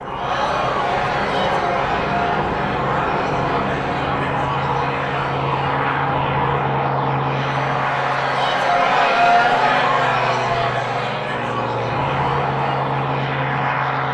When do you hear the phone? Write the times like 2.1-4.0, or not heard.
not heard.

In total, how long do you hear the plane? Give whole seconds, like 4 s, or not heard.
14 s.